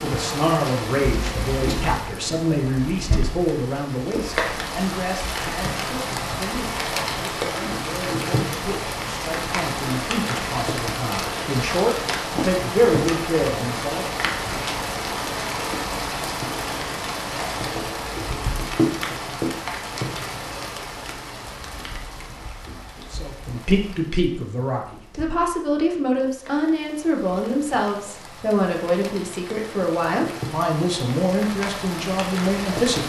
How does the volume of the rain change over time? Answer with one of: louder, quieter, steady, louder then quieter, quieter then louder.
quieter.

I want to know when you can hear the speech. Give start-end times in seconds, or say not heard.
0.0-14.2, 23.1-33.0.